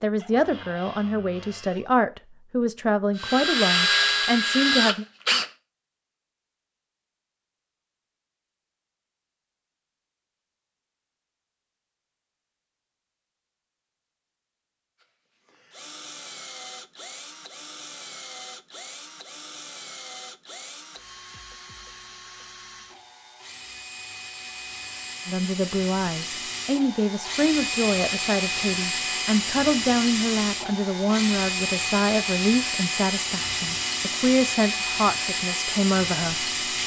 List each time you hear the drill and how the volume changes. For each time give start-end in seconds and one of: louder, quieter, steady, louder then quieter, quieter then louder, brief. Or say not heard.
3.1-5.5 brief
15.0-36.8 louder.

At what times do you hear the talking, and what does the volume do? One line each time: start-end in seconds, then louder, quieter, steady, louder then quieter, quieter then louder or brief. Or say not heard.
0.0-5.0 steady
25.2-36.8 steady.